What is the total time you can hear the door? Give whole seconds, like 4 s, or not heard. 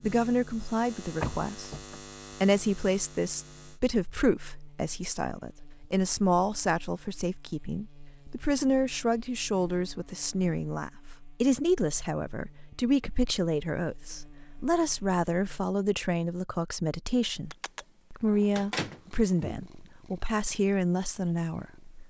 2 s.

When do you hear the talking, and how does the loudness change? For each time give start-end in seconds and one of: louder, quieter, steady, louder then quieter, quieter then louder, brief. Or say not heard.
0.0-1.7 brief
2.4-22.0 steady.